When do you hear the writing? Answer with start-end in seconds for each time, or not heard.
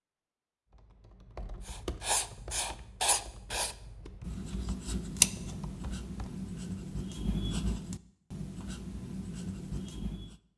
1.6-10.3.